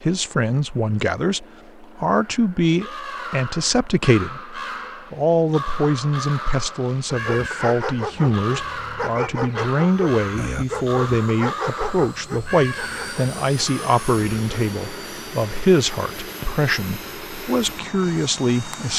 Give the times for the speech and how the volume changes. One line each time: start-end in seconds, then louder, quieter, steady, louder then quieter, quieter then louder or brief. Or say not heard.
0.0-18.9 steady.